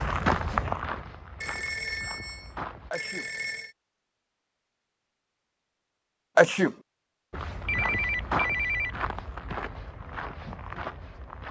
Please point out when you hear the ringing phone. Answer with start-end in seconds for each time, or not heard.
1.4-3.8, 7.7-8.9.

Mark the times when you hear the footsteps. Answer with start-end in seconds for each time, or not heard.
0.0-2.9, 7.3-11.4.